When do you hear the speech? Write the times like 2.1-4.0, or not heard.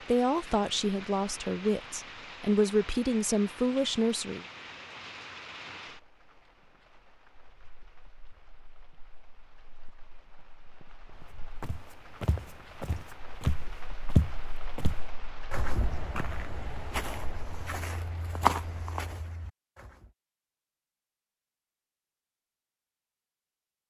0.1-4.5.